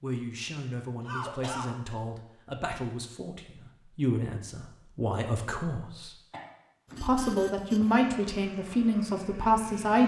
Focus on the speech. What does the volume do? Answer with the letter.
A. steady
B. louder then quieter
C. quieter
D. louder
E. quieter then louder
D.